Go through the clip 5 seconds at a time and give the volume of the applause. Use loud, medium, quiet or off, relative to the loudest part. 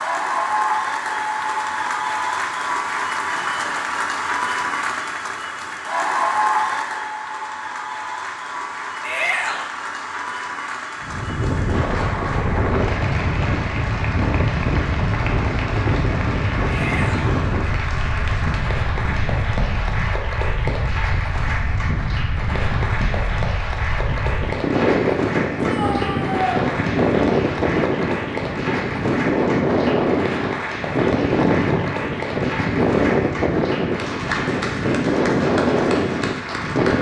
loud, loud, medium, medium, medium, medium, medium, medium.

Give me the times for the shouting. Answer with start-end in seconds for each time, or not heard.
9.0-9.7, 16.6-17.4, 25.6-26.4.